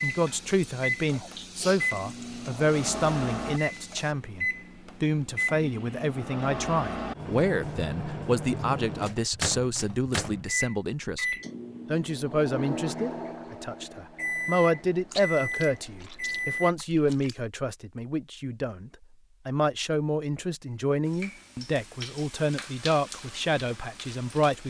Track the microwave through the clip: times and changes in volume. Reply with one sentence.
The microwave can be heard from 0.0 to 16.8 s, at a steady volume.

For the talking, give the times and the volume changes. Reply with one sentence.
You can hear the talking from 0.0 to 24.6 s, at a steady volume.